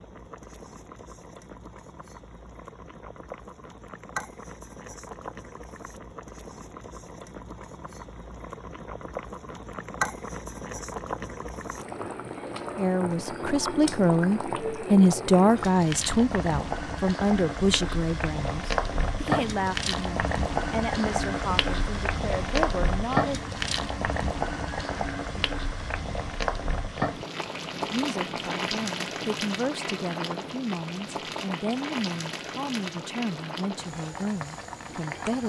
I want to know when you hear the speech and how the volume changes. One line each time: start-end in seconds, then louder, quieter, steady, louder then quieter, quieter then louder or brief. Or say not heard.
12.8-23.4 quieter
27.8-35.4 steady.